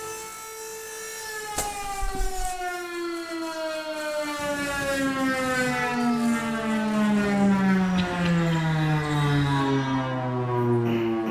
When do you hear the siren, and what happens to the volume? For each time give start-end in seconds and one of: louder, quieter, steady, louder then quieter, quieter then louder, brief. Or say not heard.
0.0-11.2 louder.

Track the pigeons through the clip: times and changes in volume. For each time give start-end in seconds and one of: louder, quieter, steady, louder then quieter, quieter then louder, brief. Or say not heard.
not heard.